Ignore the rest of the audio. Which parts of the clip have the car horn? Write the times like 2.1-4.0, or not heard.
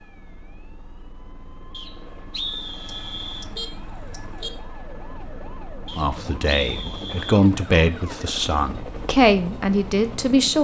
2.9-4.5.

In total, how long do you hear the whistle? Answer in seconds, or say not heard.
3 s.